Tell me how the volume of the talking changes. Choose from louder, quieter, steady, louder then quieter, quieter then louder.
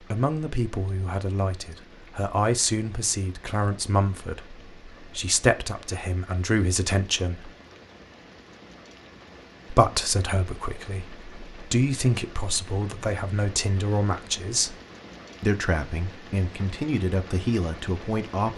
steady.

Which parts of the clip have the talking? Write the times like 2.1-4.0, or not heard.
0.1-7.5, 9.7-14.8, 15.4-18.5.